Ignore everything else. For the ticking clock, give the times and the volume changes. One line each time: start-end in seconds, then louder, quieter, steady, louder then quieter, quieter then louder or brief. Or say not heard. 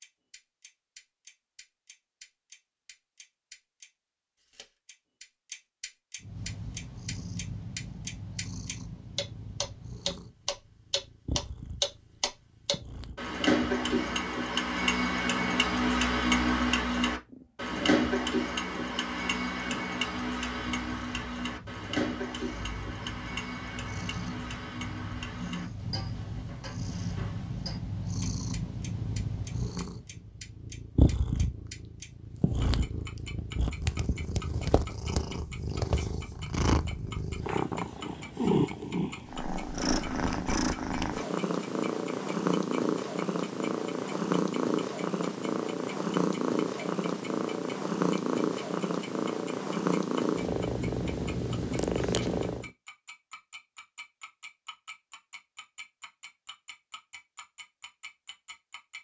0.0-58.9 louder then quieter.